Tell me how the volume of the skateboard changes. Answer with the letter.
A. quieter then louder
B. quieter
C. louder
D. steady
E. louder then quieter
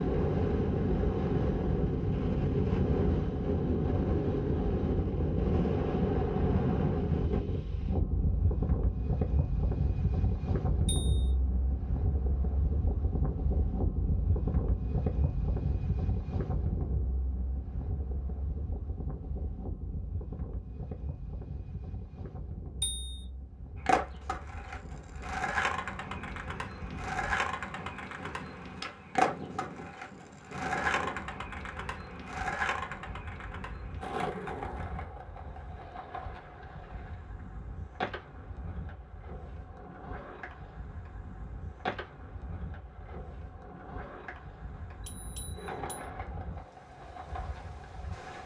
B.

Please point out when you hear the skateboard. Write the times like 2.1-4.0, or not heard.
23.8-48.4.